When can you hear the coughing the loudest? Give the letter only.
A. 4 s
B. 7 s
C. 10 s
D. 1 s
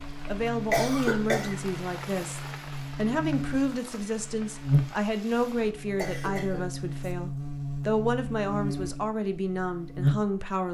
D.